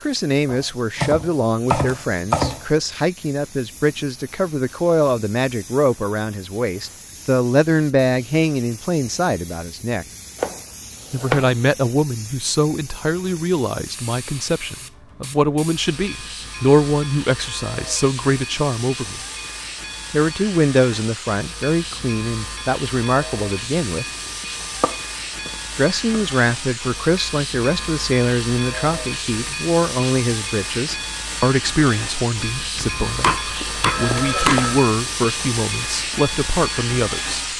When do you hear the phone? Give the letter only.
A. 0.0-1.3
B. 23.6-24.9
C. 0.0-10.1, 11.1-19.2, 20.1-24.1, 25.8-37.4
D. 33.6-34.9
D.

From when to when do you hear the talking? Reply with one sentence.
You can hear the talking from 0.0 to 10.1 s, from 11.1 to 19.2 s, from 20.1 to 24.1 s and from 25.8 to 37.4 s.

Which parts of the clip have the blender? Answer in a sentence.
You can't hear the blender here.